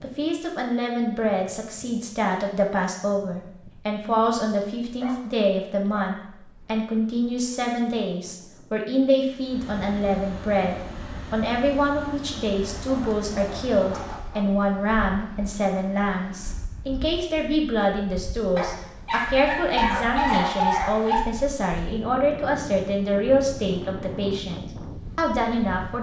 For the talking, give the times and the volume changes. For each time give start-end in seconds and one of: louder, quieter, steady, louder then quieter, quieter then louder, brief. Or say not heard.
0.0-25.9 steady.